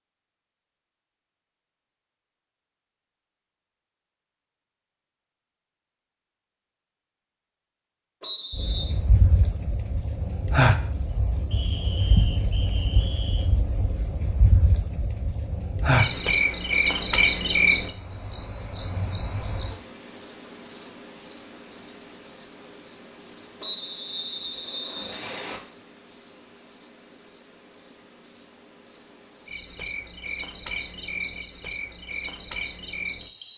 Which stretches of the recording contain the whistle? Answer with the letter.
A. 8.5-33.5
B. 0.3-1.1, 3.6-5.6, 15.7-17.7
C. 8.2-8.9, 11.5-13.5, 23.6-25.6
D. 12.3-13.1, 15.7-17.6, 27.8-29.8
C.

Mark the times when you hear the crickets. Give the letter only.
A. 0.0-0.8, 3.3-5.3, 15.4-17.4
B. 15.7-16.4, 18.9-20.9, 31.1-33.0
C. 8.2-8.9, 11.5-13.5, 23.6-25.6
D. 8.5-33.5
D.